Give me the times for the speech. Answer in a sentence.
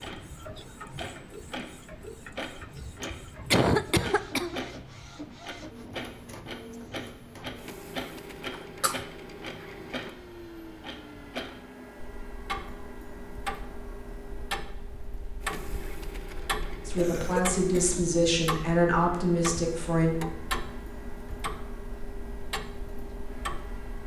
You can hear the speech from 16.9 to 20.1 s.